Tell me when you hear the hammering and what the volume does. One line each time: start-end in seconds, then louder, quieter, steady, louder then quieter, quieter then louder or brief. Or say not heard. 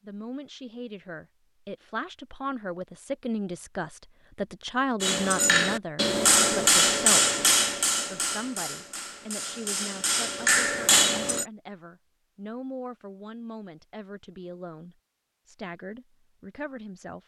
5.0-11.4 quieter then louder.